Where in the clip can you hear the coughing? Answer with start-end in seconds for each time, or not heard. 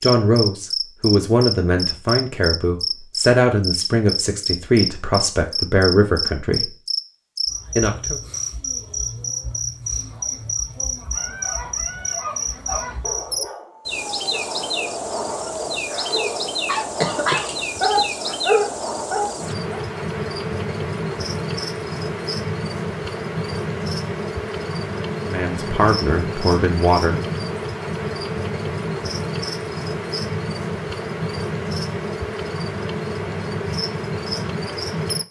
17.0-18.0.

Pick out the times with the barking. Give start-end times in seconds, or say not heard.
11.1-19.8.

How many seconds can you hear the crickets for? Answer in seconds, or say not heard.
35 s.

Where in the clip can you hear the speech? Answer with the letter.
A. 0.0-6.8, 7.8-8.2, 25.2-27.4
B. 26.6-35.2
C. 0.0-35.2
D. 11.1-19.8
A.